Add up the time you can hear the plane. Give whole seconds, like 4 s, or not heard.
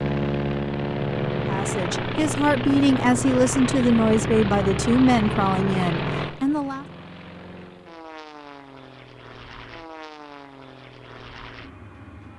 12 s.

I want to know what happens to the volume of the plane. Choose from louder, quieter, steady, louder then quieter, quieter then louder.
quieter.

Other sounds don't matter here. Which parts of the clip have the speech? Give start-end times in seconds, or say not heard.
1.4-6.8.